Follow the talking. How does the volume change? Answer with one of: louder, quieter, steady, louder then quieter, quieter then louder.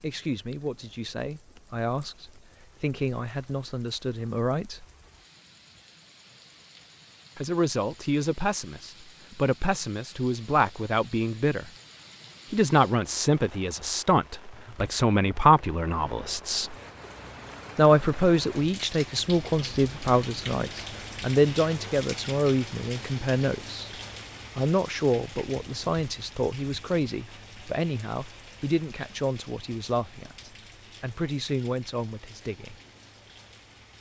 louder then quieter.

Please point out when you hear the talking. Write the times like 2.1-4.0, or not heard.
0.0-4.8, 7.3-11.7, 12.5-16.8, 17.8-23.9, 24.6-32.8.